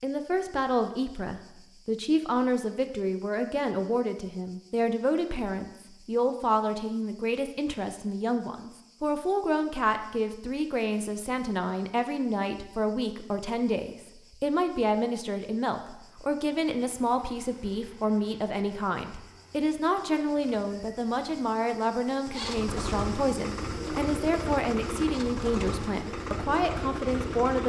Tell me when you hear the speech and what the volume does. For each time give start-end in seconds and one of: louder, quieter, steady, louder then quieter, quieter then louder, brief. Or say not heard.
0.0-27.6 steady.